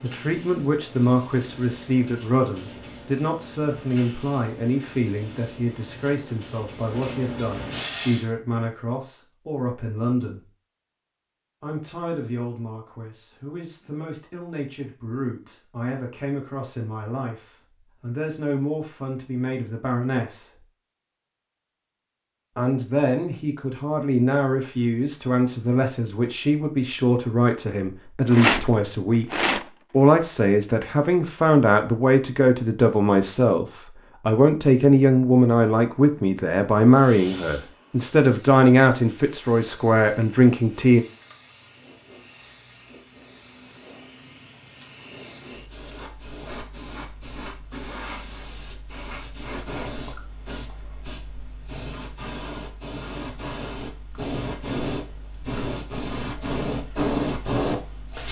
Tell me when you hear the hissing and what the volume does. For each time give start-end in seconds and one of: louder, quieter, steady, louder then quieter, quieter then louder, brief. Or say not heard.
0.0-8.3 louder
36.9-58.2 louder.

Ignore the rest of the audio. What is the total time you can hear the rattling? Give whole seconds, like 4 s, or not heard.
2 s.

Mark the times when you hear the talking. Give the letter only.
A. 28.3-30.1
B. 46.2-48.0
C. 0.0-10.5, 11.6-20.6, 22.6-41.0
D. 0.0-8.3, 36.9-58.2
C.